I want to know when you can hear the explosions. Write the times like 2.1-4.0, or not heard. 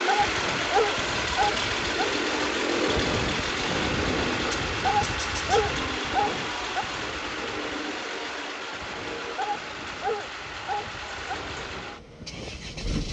not heard.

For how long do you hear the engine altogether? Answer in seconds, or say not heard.
13 s.